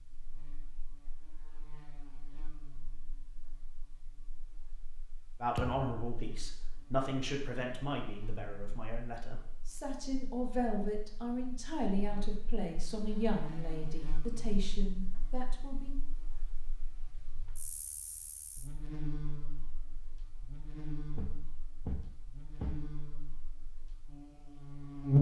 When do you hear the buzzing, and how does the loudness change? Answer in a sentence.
The buzzing can be heard from 0.0 to 25.1 s, getting louder.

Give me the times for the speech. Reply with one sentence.
The speech can be heard from 5.4 to 16.0 s.